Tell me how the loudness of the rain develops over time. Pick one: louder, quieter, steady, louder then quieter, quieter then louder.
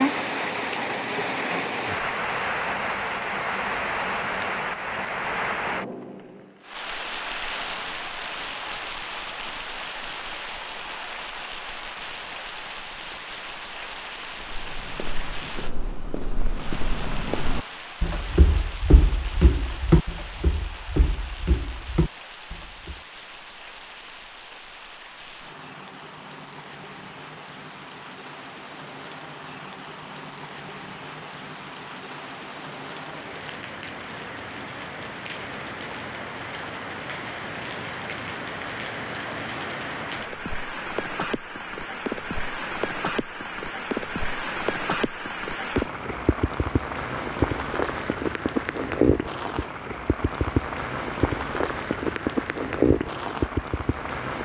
quieter then louder.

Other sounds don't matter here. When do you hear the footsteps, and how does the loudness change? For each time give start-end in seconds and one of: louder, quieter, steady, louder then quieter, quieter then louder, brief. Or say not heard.
14.3-23.0 louder then quieter.